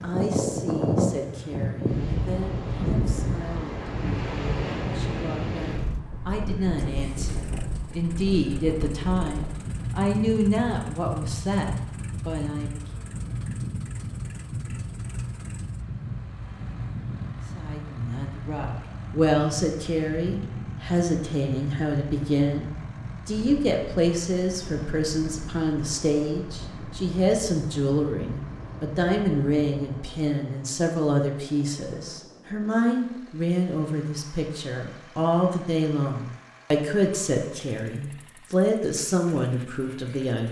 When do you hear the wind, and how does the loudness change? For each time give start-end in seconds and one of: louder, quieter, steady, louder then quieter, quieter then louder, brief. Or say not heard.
0.0-30.1 quieter.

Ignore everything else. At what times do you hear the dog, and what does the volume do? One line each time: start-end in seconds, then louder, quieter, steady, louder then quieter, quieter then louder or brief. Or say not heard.
not heard.